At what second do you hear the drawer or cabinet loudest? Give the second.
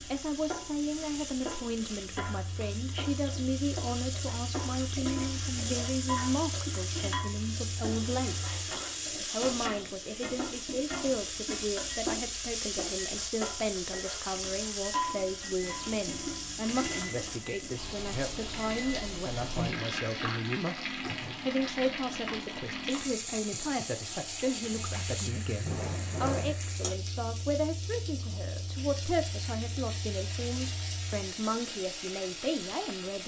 26 s.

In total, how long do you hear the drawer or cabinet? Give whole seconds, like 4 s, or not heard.
2 s.